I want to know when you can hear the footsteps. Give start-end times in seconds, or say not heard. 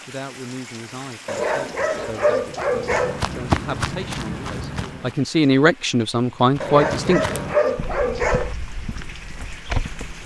2.5-5.2, 6.5-10.2.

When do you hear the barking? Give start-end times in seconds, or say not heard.
1.2-3.2, 6.6-8.6.